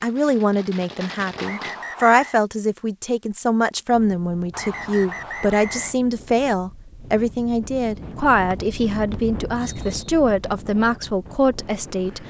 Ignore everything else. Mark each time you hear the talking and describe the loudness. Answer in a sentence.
The talking can be heard from 0.0 to 12.2 s, at a steady volume.